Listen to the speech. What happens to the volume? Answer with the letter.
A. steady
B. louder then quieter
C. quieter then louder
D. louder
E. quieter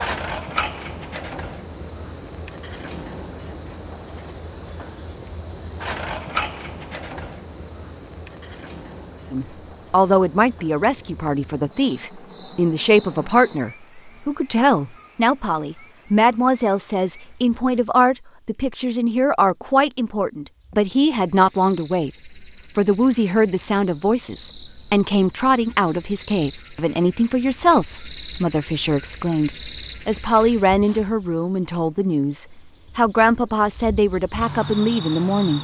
A.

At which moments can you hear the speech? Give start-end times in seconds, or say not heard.
9.3-35.5.